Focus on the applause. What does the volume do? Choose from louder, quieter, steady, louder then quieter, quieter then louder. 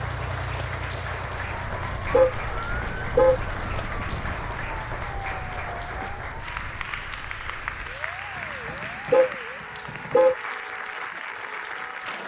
steady.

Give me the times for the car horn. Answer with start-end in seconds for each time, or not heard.
1.4-3.4, 8.3-10.3.